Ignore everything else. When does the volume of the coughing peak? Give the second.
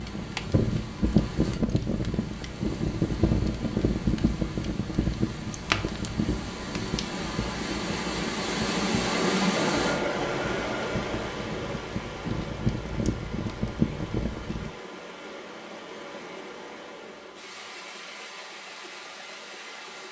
10 s.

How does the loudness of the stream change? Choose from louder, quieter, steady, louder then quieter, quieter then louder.
louder then quieter.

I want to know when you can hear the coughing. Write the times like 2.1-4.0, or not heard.
9.6-11.0.